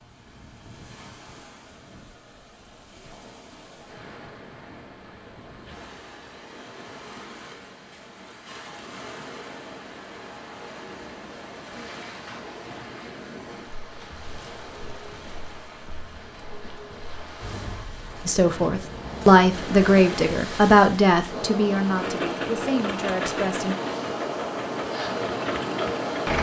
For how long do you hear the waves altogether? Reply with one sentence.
You can hear the waves for 26 seconds altogether.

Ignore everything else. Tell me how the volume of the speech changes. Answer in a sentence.
The loudness of the speech goes down.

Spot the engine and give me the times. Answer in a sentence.
The engine can be heard from 21.9 to 26.3 s.